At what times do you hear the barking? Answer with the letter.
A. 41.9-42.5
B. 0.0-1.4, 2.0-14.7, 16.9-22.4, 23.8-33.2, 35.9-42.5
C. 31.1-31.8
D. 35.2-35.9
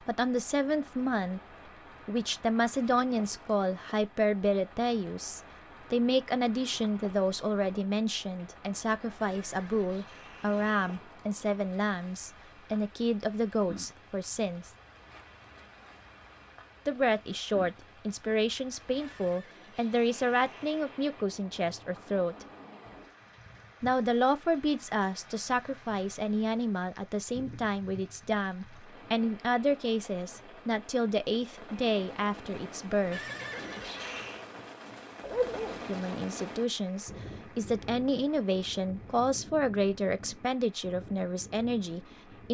D.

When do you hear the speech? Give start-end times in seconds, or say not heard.
0.0-1.4, 2.0-14.7, 16.9-22.4, 23.8-33.2, 35.9-42.5.